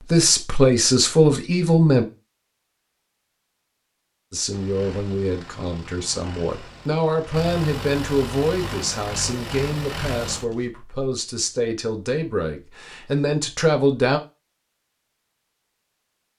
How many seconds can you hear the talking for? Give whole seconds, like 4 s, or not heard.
12 s.